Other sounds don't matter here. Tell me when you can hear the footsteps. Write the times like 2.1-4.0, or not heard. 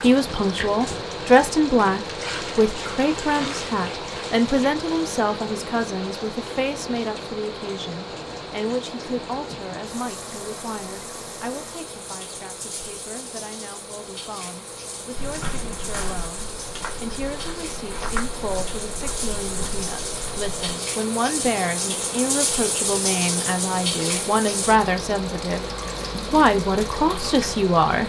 15.2-20.5.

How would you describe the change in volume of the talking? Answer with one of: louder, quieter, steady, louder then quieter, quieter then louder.
quieter then louder.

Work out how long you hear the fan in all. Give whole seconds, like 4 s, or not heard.
28 s.